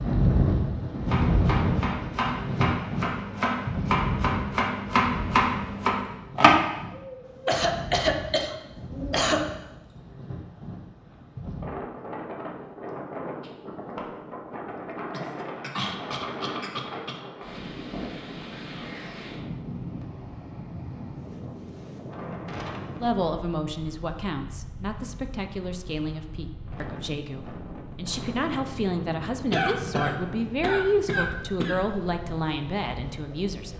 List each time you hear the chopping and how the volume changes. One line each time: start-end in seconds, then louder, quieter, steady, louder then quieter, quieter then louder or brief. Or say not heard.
1.0-6.7 louder.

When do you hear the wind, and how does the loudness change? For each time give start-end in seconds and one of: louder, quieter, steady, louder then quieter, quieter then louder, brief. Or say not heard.
0.0-33.7 quieter.